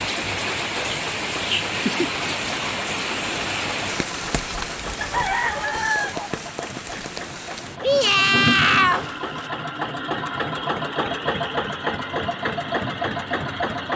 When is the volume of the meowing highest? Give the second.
9 s.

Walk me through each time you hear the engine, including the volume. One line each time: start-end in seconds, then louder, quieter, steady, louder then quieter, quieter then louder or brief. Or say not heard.
0.0-13.9 louder.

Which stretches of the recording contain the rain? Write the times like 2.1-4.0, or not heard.
0.0-9.1.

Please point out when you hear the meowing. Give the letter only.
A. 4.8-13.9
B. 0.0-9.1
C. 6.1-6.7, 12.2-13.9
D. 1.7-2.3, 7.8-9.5
D.